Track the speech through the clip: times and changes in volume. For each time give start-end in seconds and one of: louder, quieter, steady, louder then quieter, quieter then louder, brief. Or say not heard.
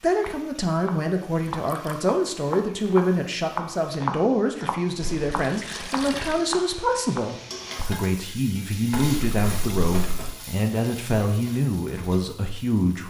0.0-13.0 steady.